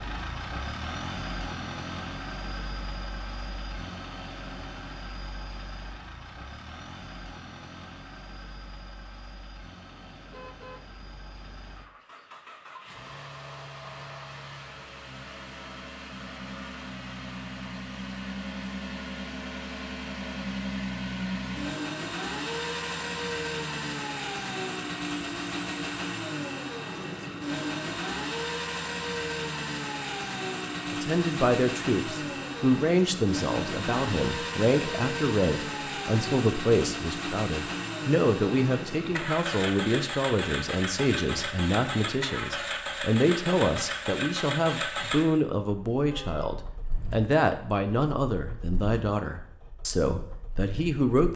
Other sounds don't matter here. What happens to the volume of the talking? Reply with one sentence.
The loudness of the talking stays about the same.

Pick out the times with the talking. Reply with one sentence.
You can hear the talking from 30.9 to 51.3 s.